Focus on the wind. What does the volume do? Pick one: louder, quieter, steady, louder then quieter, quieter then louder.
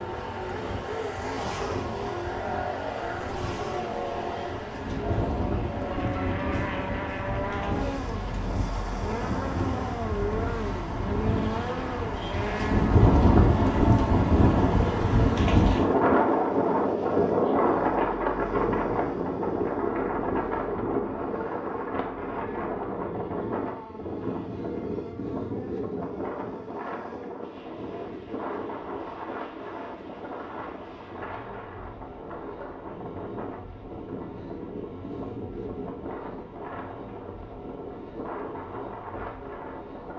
louder then quieter.